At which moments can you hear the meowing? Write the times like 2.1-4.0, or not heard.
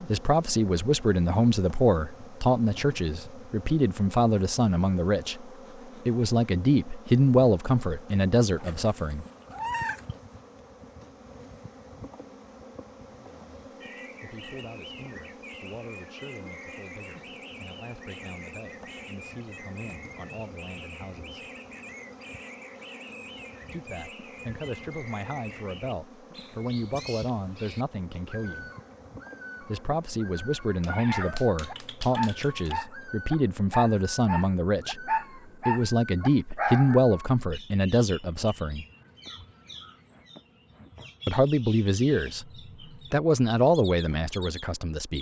8.6-10.2, 30.8-32.8.